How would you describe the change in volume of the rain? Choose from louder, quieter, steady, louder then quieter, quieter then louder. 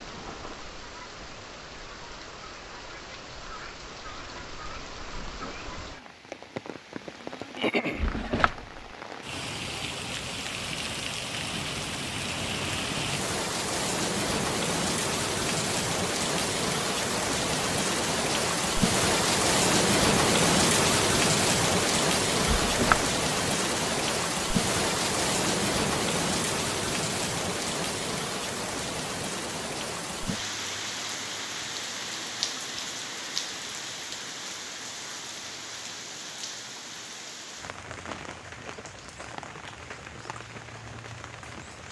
louder then quieter.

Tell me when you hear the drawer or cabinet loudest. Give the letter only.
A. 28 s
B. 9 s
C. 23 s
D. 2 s
C.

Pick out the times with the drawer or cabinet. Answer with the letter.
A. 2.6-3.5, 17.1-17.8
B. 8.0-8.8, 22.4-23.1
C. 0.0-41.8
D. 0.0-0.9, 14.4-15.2
B.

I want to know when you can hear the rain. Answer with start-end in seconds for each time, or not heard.
0.0-41.8.